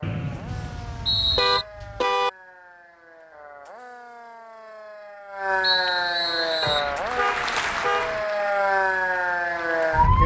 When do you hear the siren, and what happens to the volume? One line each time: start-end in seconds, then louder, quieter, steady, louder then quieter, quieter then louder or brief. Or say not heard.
0.0-10.2 louder.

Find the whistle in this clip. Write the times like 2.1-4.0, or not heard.
0.0-1.6, 5.6-6.9.